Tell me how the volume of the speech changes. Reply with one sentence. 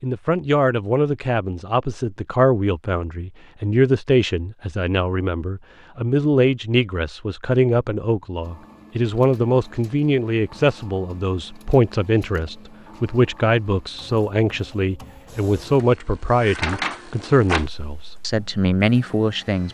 The loudness of the speech stays about the same.